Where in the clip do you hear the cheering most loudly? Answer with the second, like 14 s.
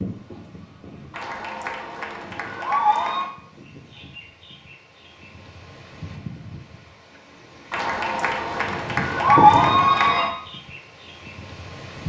9 s.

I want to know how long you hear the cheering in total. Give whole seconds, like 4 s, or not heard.
5 s.